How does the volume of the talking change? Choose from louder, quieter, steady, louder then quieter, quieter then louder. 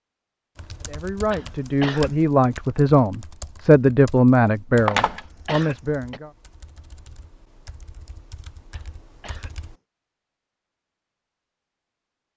louder then quieter.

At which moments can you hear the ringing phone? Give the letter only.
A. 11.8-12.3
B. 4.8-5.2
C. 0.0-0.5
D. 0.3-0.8
B.